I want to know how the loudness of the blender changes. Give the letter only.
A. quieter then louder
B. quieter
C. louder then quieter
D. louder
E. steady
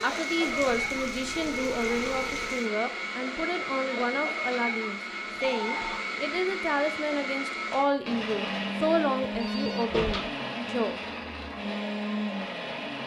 E.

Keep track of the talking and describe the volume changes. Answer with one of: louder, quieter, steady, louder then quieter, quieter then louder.
steady.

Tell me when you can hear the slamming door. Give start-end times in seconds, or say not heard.
9.3-10.2.